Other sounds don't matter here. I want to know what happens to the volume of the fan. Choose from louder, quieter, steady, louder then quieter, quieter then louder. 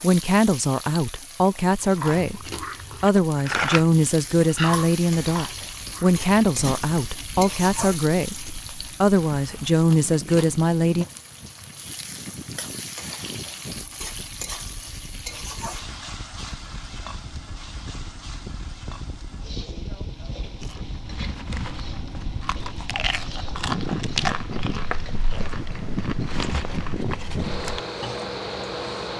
louder.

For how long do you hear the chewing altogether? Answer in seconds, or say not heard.
16 s.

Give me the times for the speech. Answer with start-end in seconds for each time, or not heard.
0.0-11.1.